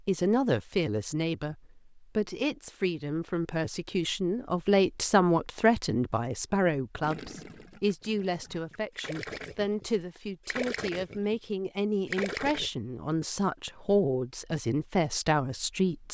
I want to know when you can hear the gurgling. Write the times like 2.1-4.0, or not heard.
7.0-12.7.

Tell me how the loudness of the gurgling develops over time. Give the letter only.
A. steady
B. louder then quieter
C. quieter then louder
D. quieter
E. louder
E.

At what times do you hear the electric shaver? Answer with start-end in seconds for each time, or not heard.
not heard.